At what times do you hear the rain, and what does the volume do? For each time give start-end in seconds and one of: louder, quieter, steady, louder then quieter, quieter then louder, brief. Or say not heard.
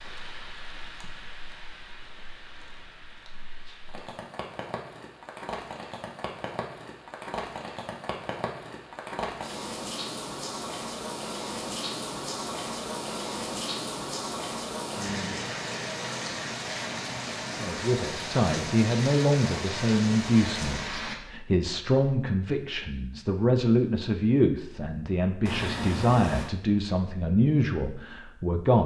0.0-21.1 louder.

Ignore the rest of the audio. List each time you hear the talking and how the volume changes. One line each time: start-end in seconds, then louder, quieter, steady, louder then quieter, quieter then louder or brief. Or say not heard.
17.6-28.8 steady.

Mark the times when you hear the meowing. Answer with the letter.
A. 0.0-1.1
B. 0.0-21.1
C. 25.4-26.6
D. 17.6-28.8
C.